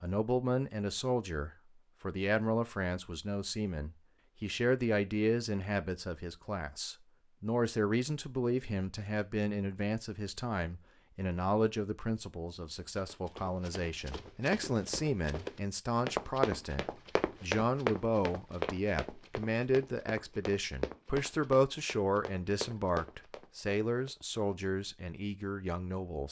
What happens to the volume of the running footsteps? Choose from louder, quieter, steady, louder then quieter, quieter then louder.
louder then quieter.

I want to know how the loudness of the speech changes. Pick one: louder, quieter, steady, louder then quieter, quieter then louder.
steady.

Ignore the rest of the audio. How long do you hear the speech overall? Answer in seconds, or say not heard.
26 s.